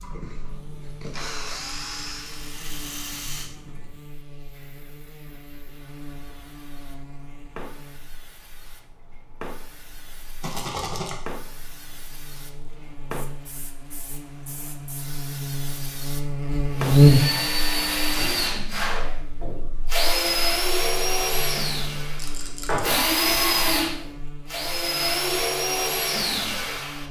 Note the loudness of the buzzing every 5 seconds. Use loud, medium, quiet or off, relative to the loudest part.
quiet, quiet, quiet, loud, quiet, quiet.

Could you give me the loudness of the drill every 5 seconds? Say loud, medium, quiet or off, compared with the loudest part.
quiet, off, off, loud, loud, loud.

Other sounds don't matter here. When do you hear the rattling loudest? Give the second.
11 s.